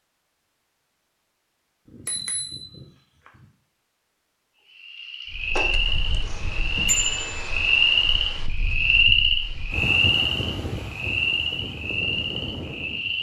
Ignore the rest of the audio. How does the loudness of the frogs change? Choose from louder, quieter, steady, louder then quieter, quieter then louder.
louder then quieter.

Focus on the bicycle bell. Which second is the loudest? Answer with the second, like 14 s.
7 s.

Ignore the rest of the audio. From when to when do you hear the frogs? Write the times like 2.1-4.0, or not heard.
4.8-13.1.